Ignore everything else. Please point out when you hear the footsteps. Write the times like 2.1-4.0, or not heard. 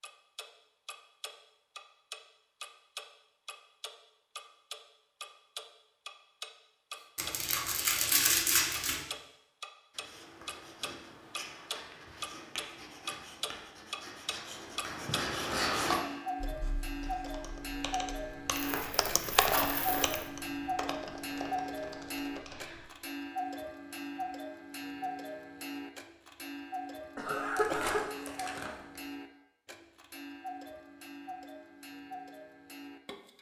not heard.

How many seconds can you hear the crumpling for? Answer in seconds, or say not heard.
5 s.